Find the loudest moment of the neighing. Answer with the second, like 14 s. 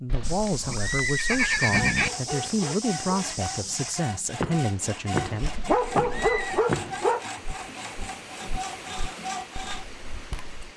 2 s.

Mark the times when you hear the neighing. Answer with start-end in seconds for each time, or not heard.
0.1-2.1, 5.4-6.7.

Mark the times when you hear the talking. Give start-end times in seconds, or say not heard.
0.0-5.5.